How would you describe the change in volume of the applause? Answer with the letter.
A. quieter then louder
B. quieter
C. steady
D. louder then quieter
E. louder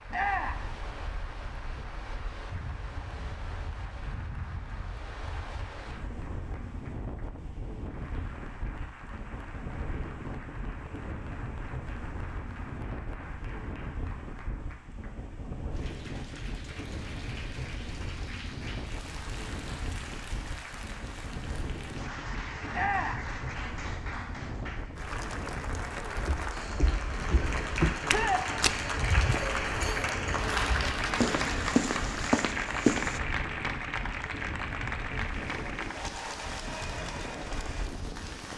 E.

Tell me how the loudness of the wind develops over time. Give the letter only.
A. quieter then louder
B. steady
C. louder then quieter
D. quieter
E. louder
B.